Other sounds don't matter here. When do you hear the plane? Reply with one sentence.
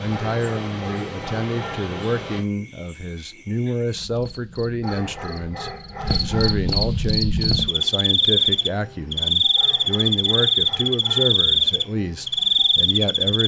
You can hear the plane from 0.0 to 2.5 s.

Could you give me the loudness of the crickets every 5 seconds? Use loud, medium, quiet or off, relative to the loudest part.
quiet, loud, loud.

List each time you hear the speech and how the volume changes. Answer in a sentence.
You can hear the speech from 0.0 to 13.4 s, at a steady volume.